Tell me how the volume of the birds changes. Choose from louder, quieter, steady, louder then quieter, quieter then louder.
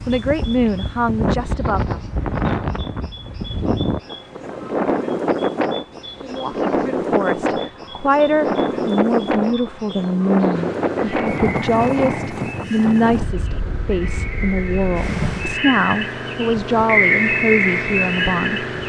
louder.